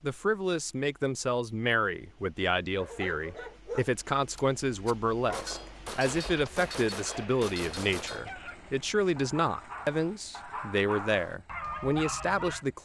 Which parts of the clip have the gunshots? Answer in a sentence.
The gunshots can be heard from 4.3 to 8.3 s.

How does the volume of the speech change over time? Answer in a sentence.
The loudness of the speech stays about the same.